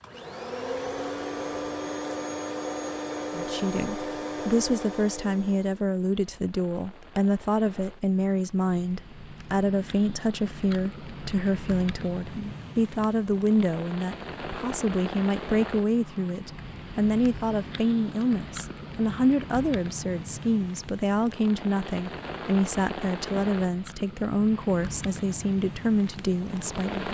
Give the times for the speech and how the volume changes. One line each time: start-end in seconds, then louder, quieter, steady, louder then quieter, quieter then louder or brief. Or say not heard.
3.4-27.1 steady.